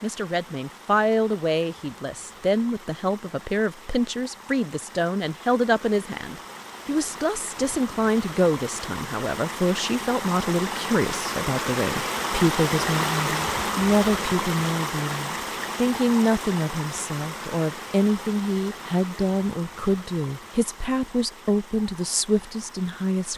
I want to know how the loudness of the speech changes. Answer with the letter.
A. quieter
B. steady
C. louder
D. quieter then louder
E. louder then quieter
B.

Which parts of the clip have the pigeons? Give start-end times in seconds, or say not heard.
not heard.